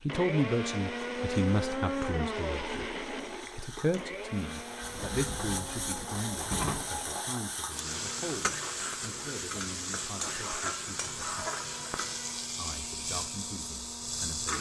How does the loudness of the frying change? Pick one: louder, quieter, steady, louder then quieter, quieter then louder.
louder.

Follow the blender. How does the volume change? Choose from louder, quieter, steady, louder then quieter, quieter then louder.
quieter.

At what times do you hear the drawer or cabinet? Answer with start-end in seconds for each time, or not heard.
4.8-6.9.